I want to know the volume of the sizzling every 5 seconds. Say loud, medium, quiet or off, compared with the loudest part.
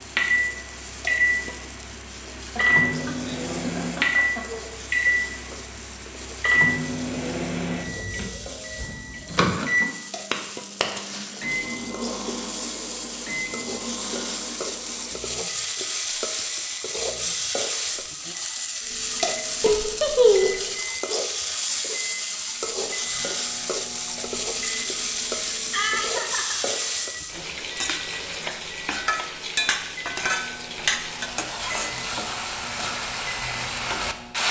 quiet, quiet, medium, loud, loud, loud, loud.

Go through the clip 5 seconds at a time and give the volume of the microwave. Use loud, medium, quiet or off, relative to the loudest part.
loud, loud, medium, quiet, quiet, quiet, quiet.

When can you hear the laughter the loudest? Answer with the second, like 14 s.
20 s.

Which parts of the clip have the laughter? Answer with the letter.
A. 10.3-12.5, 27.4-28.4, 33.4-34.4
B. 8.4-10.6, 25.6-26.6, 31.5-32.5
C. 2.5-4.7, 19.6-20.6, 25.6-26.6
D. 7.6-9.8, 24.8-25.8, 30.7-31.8
C.